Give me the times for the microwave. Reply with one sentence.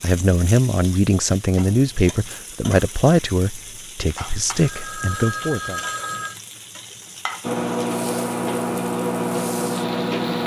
The microwave can be heard from 7.4 to 10.4 s.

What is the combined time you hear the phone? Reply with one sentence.
You can hear the phone for 2 seconds altogether.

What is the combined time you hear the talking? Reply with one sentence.
The talking can be heard for 6 seconds in total.